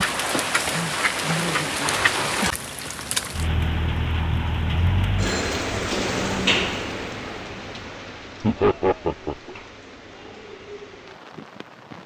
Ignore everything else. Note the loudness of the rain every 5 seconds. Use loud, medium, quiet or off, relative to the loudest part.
loud, loud, quiet.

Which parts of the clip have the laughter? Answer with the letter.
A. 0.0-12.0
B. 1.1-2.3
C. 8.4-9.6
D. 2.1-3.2
C.